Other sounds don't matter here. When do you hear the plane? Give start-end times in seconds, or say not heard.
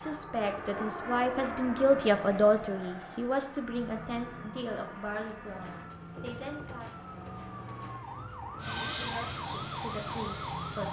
0.0-5.9, 8.6-10.8.